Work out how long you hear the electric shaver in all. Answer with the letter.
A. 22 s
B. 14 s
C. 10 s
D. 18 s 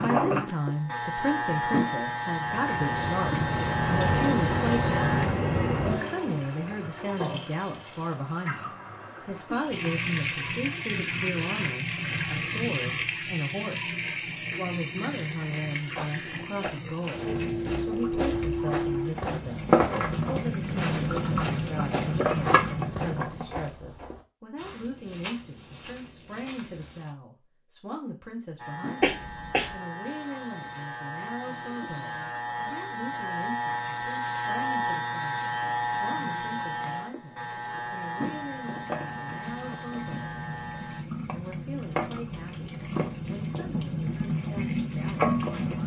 D.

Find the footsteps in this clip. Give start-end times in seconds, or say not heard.
15.2-27.1.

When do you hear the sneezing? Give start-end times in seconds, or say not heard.
29.0-29.8.